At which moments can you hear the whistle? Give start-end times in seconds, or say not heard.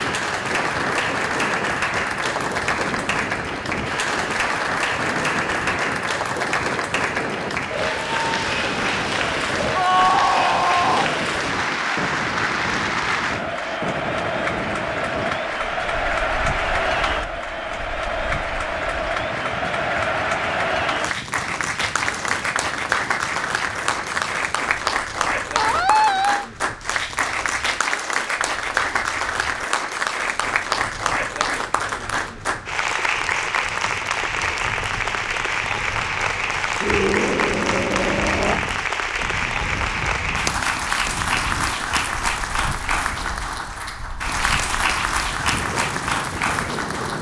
not heard.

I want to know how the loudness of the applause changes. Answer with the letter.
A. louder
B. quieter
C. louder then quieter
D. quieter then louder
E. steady
E.